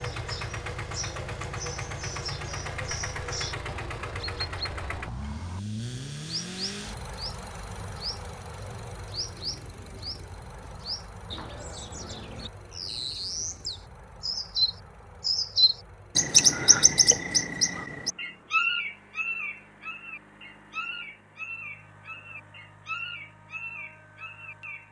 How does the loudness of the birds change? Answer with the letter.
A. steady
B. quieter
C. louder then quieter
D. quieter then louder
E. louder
C.